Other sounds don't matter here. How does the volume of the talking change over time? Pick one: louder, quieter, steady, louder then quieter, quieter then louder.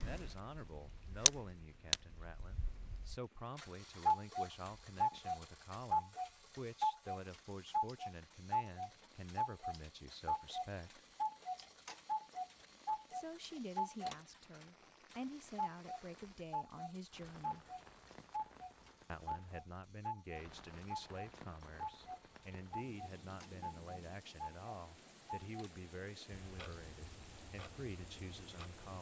steady.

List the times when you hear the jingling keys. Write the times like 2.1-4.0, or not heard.
not heard.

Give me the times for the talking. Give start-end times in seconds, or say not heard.
0.0-11.1, 13.1-17.6, 19.1-28.9.